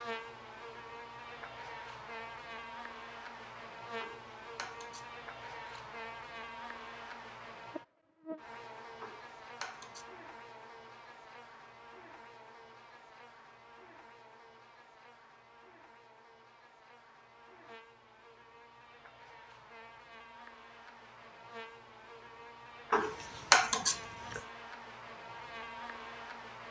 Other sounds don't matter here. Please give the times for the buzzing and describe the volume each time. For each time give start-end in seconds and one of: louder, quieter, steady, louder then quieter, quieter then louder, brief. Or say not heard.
0.0-26.6 quieter then louder.